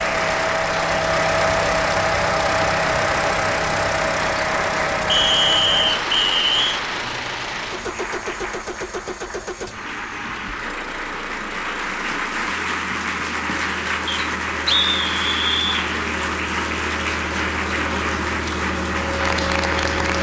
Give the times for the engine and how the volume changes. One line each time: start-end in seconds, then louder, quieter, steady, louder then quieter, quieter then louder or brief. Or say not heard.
0.0-20.1 quieter then louder.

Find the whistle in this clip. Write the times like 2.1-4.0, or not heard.
5.0-6.8, 14.1-15.8.